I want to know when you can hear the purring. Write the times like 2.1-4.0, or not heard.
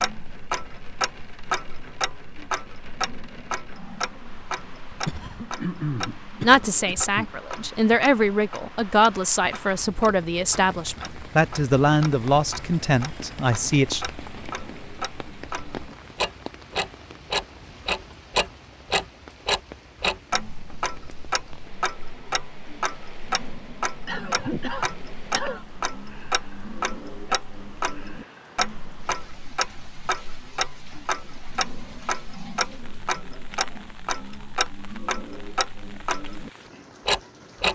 not heard.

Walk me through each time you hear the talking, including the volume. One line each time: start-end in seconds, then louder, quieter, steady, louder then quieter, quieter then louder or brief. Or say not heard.
6.4-14.1 steady.